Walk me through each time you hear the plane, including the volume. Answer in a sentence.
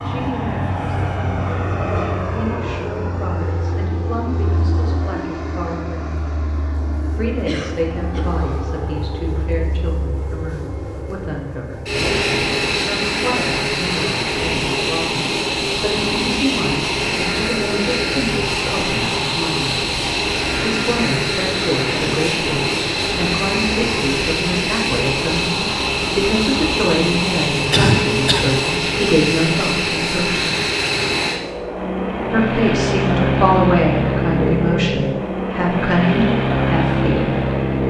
The plane can be heard from 0.0 to 37.8 s, getting louder.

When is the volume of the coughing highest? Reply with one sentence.
The volume of the coughing peaks at 28 seconds.